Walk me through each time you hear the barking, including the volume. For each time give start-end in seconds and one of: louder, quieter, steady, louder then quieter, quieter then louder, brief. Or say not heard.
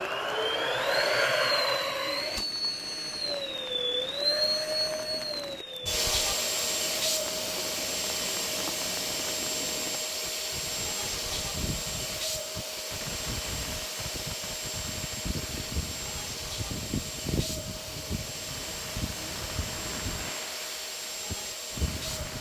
not heard.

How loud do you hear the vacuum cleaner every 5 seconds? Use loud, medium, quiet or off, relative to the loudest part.
loud, loud, medium, medium, medium.